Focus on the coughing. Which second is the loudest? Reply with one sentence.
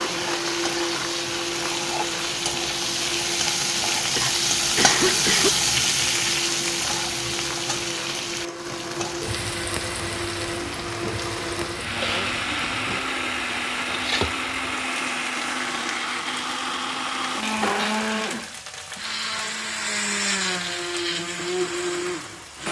The loudest moment of the coughing is at 5 seconds.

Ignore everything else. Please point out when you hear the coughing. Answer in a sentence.
You can hear the coughing from 4.2 to 5.5 s, from 11.8 to 12.3 s and from 17.4 to 18.1 s.